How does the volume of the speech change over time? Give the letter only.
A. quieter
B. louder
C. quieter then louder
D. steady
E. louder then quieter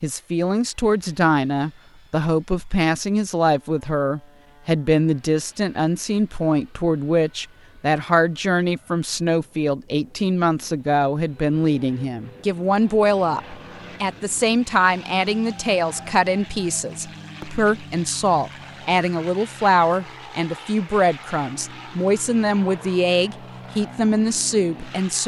D.